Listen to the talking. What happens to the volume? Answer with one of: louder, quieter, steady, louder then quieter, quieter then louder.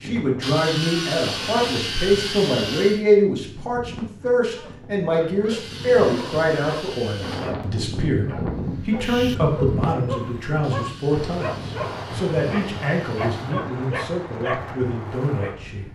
quieter.